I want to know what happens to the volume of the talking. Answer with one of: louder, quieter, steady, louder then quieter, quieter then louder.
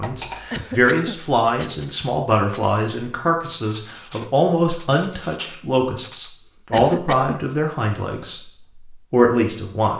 steady.